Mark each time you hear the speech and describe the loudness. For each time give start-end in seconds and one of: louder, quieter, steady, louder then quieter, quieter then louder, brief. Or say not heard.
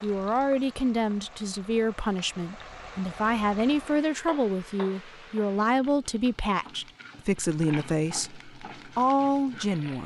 0.0-10.0 steady.